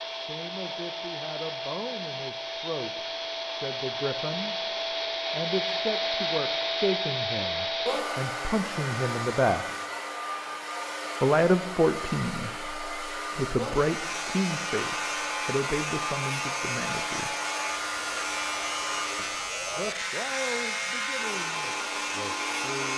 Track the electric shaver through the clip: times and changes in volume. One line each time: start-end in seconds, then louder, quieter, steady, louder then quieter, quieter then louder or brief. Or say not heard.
13.6-22.9 steady.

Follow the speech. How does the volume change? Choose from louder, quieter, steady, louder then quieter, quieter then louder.
louder then quieter.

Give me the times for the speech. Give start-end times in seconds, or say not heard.
0.1-9.7, 11.2-17.4, 19.1-22.9.